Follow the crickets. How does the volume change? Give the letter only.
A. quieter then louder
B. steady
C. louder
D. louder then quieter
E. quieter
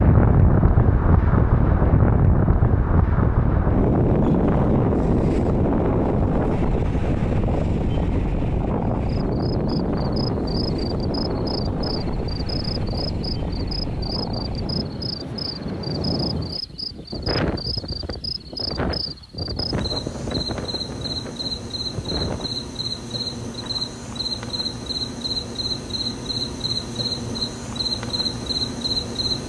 C.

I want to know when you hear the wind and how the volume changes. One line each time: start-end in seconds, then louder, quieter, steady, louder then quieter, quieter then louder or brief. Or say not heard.
0.0-22.5 quieter.